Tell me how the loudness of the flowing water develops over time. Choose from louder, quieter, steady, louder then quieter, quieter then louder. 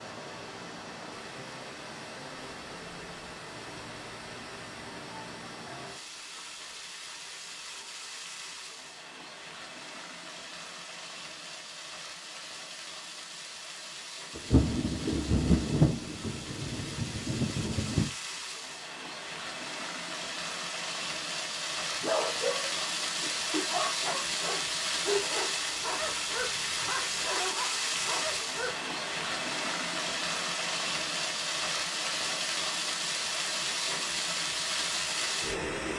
louder.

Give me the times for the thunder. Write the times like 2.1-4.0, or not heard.
14.3-18.1.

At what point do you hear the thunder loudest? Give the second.
16 s.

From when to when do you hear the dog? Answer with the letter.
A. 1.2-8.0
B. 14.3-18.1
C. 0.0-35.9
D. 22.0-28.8
D.